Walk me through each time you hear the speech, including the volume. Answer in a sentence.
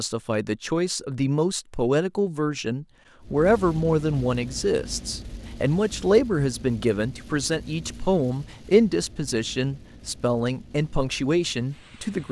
The speech can be heard from 0.0 to 12.2 s, at a steady volume.